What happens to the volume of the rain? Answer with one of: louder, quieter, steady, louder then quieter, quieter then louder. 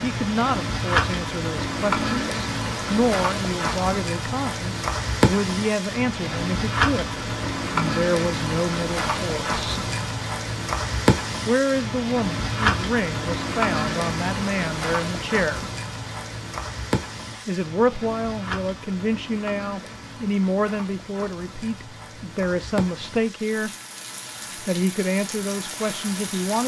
quieter.